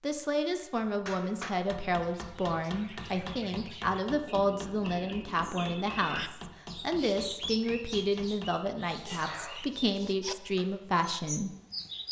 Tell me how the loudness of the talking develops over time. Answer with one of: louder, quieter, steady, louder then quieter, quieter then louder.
steady.